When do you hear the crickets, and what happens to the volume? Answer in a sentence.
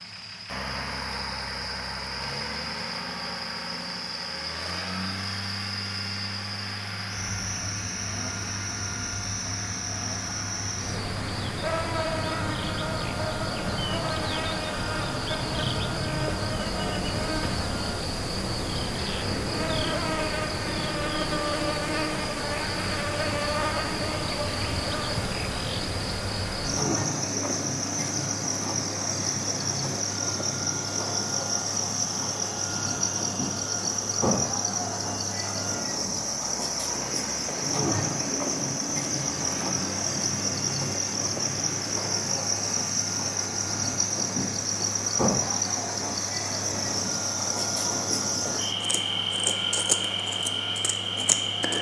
You can hear the crickets from 0.0 to 51.7 s, getting louder.